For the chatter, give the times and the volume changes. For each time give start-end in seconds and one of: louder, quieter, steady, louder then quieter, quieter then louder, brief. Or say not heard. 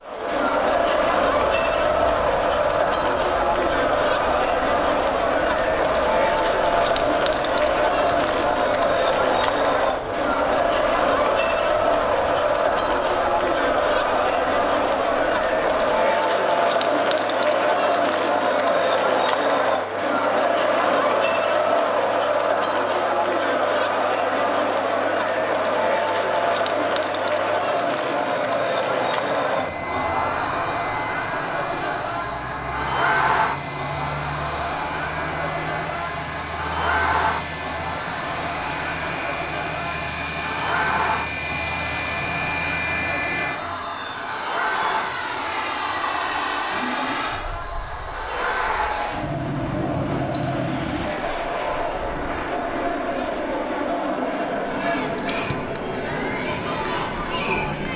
0.0-57.9 quieter.